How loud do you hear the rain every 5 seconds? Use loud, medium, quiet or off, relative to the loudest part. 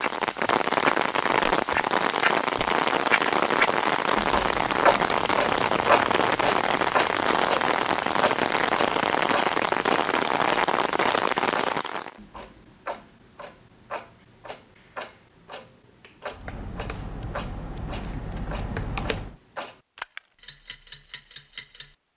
loud, loud, loud, off, off.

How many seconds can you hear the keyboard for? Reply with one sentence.
The keyboard can be heard for 3 seconds in total.